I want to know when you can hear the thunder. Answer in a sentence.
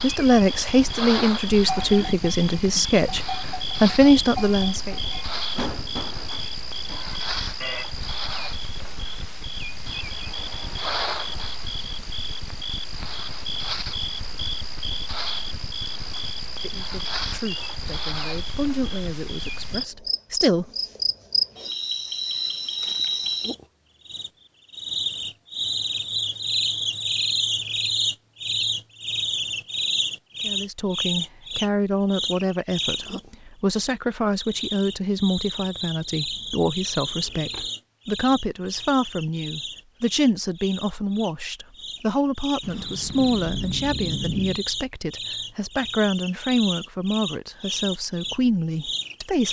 You can hear the thunder from 42.6 to 44.6 s.